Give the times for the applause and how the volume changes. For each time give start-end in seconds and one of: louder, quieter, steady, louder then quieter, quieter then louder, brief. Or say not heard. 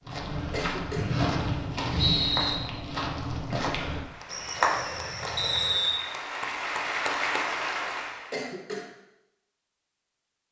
3.9-8.4 louder.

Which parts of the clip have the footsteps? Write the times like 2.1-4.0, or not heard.
0.1-5.9.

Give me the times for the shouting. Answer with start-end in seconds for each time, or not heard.
not heard.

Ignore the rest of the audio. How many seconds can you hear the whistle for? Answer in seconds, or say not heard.
2 s.